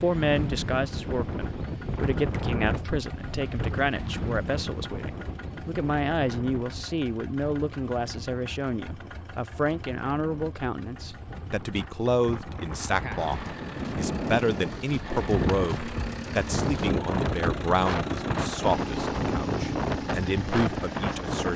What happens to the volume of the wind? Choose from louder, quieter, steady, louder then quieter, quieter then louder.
quieter then louder.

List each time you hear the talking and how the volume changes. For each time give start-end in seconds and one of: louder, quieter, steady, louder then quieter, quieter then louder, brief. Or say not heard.
0.0-21.5 steady.